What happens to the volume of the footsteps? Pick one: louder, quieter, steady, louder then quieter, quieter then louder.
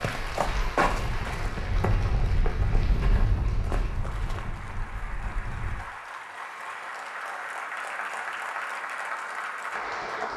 quieter.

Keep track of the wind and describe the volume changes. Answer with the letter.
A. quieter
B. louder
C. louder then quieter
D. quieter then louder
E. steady
C.